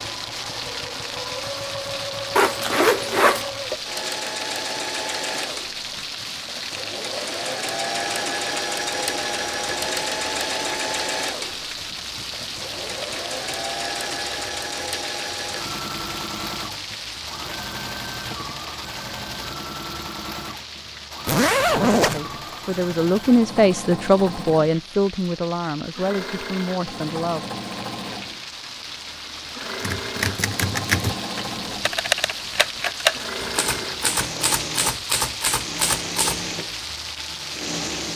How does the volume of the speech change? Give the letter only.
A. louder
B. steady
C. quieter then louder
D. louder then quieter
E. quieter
E.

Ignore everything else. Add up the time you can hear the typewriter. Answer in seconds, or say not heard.
7 s.